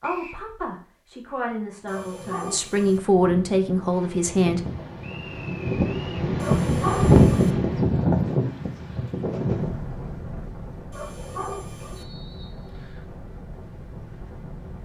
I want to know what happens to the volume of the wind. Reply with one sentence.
The loudness of the wind goes up, then down.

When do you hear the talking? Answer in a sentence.
The talking can be heard from 0.0 to 4.6 s.